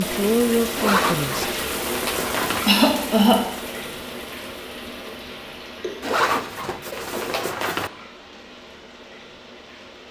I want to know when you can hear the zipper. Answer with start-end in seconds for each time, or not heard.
0.8-2.6, 6.0-7.9.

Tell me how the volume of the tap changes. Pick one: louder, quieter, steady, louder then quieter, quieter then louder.
quieter.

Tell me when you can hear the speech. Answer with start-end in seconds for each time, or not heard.
0.0-1.5.